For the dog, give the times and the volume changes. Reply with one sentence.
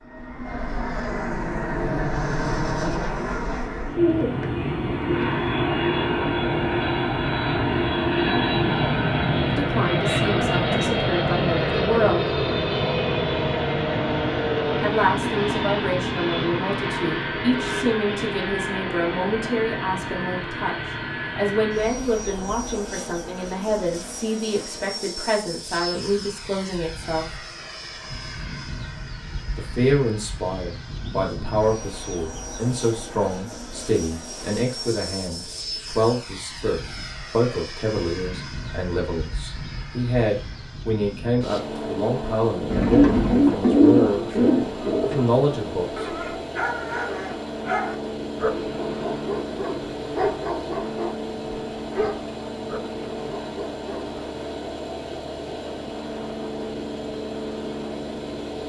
The dog can be heard from 46.0 to 54.1 s, getting quieter.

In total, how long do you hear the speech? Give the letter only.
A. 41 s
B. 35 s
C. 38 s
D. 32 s
D.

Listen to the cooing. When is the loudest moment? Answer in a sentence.
The loudest moment of the cooing is at 44 seconds.